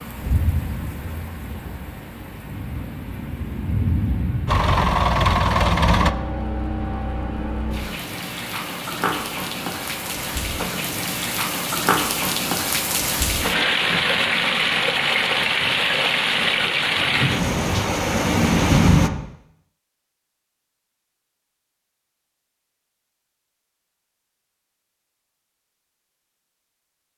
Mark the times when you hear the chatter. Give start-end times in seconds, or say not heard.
not heard.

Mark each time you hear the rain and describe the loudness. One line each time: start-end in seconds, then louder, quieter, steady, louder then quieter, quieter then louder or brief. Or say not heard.
0.0-19.1 louder.